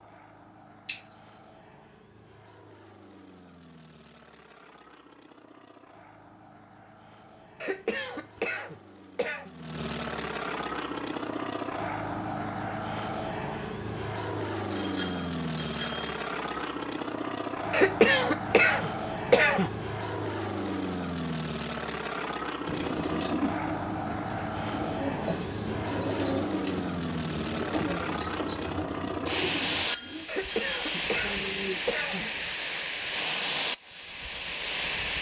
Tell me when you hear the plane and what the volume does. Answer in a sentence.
You can hear the plane from 0.0 to 35.1 s, getting louder.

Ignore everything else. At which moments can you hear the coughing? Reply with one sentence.
You can hear the coughing from 7.6 to 9.5 s, from 17.7 to 19.7 s and from 30.2 to 32.2 s.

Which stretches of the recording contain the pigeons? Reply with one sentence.
You can hear the pigeons from 22.6 to 32.4 s.